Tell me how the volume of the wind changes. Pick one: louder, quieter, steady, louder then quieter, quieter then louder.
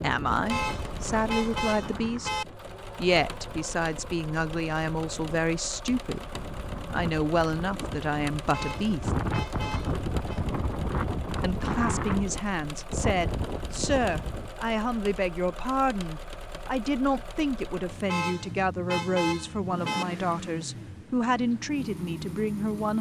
quieter then louder.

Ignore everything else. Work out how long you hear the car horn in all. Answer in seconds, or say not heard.
6 s.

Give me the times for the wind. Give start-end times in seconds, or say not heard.
0.0-14.5.